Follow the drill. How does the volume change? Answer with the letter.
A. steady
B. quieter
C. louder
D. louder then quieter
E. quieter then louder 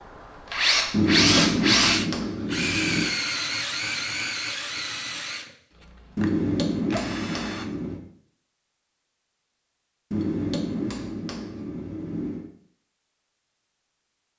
B.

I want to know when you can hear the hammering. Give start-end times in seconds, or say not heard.
0.9-3.1, 6.2-8.0, 10.1-12.5.